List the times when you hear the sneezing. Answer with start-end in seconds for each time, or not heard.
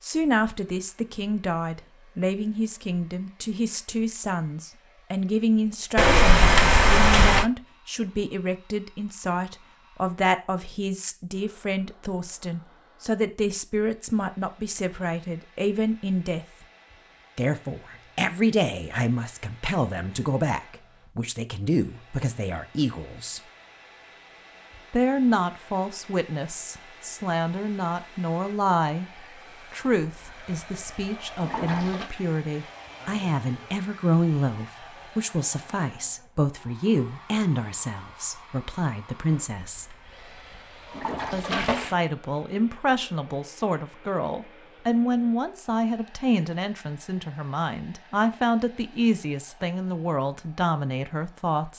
not heard.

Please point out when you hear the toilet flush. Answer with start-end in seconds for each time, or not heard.
6.0-7.5, 29.8-32.1, 39.5-42.0.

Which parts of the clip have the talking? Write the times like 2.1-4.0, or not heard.
0.0-16.4, 17.4-23.4, 24.9-39.9, 41.3-51.7.